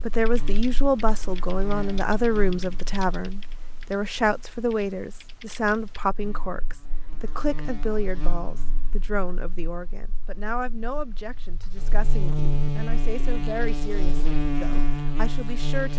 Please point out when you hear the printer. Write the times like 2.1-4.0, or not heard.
not heard.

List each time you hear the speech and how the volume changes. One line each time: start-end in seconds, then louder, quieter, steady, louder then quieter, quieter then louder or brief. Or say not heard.
0.0-15.9 quieter.